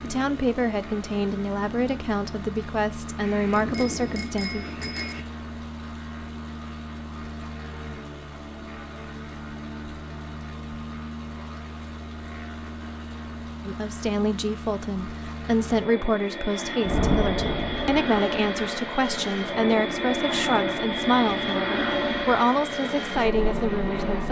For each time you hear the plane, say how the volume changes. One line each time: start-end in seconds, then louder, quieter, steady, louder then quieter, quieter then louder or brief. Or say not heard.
0.0-24.2 louder.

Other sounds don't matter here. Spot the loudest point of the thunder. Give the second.
17 s.